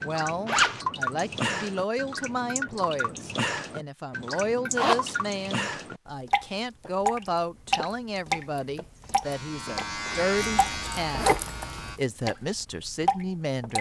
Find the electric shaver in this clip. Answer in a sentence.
You can hear the electric shaver from 9.2 to 12.0 s.